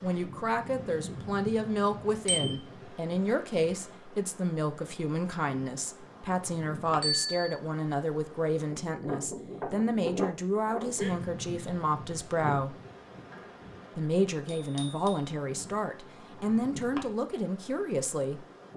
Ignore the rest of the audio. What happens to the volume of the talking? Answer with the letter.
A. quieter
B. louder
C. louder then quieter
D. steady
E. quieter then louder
D.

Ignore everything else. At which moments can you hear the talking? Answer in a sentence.
The talking can be heard from 0.0 to 12.8 s and from 13.9 to 18.4 s.